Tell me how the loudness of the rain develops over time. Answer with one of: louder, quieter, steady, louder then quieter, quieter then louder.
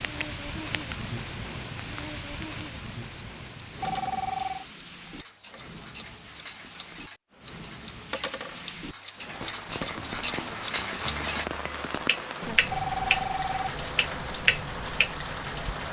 quieter then louder.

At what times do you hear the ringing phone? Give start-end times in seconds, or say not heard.
3.8-4.7, 12.7-14.2.